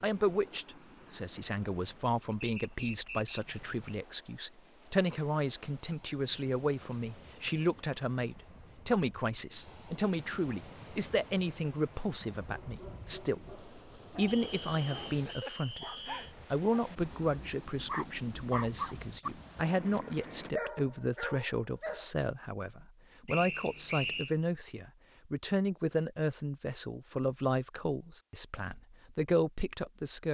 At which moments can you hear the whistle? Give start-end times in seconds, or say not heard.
2.4-3.4, 14.2-16.4, 23.2-24.4.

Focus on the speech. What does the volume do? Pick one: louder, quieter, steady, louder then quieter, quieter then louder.
steady.